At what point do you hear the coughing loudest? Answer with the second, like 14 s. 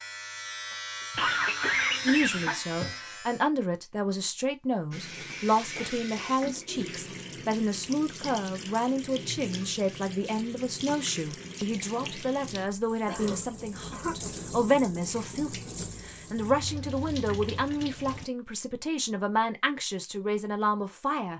2 s.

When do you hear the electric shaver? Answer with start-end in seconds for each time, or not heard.
0.0-3.5.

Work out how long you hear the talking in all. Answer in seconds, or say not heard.
19 s.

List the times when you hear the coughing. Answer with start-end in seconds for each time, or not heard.
1.1-3.0, 13.1-14.2.